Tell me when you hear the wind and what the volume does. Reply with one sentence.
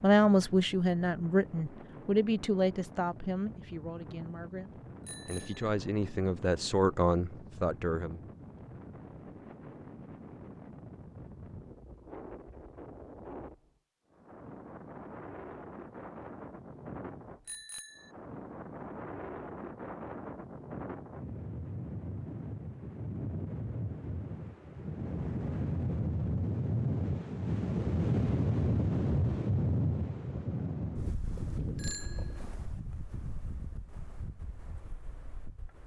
The wind can be heard from 0.0 to 35.8 s, getting louder.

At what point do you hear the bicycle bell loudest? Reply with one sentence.
The loudest moment of the bicycle bell is at 32 seconds.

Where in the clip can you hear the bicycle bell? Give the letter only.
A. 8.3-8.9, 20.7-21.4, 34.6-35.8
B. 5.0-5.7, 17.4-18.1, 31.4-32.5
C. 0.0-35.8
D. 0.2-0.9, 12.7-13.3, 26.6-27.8
B.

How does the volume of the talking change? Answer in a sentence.
The volume of the talking goes down, then up.